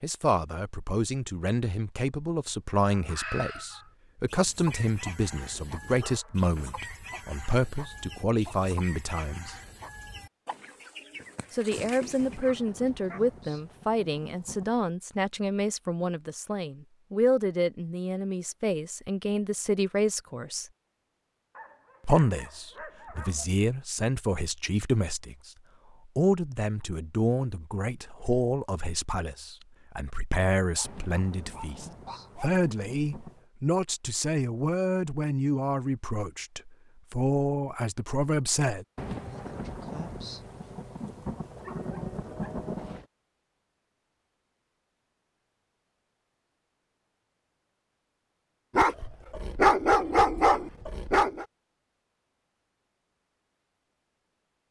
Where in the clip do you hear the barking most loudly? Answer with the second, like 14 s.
50 s.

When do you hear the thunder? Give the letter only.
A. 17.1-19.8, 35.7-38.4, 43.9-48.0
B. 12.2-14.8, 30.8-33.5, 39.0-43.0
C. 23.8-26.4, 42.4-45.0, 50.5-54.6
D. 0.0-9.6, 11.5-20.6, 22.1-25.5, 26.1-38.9
B.